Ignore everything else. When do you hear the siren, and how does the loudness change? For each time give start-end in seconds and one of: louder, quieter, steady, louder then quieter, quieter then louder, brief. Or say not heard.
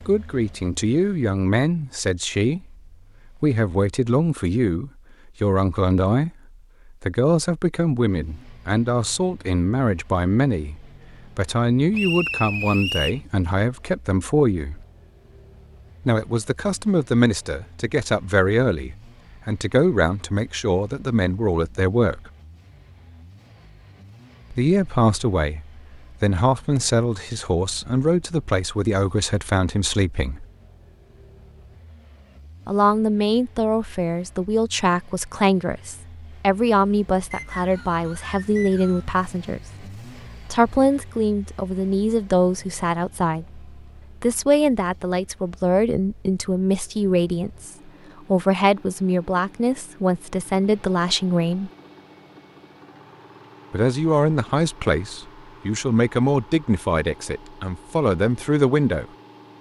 not heard.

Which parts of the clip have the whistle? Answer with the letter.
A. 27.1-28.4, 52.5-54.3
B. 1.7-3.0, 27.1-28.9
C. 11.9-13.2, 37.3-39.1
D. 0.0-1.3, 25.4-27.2
C.